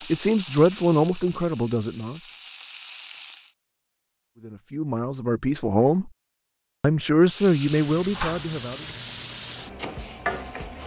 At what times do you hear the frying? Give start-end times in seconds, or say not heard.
0.0-3.5, 7.2-10.8.